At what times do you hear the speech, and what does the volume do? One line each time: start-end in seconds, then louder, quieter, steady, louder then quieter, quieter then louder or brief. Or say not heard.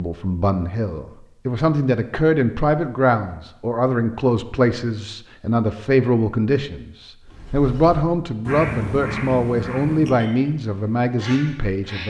0.0-12.0 steady.